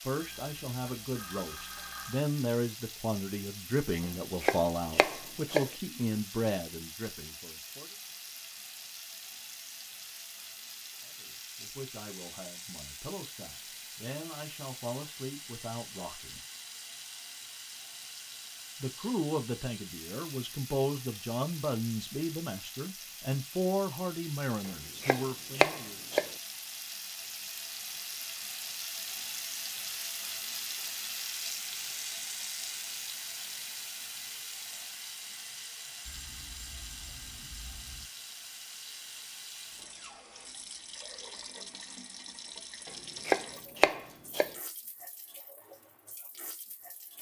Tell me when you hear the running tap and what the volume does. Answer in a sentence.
You can hear the running tap from 0.0 to 47.1 s, getting louder then quieter.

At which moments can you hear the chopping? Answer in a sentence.
You can hear the chopping from 4.0 to 5.7 s, from 24.6 to 26.3 s and from 42.9 to 44.5 s.